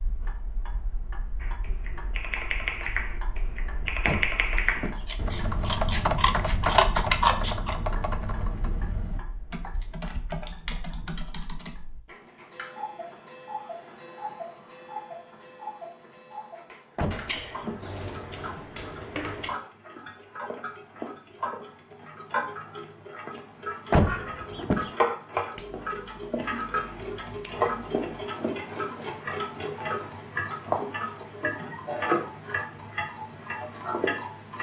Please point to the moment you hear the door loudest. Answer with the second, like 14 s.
24 s.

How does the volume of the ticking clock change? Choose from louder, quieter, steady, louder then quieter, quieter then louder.
louder.